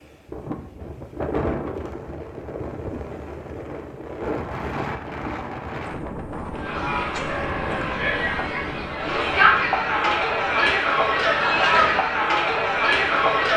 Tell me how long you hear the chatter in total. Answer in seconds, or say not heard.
7 s.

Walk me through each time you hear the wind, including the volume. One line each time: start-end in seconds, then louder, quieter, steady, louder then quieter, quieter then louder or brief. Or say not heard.
0.0-13.3 quieter.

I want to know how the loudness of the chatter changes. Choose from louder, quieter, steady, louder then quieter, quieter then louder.
louder.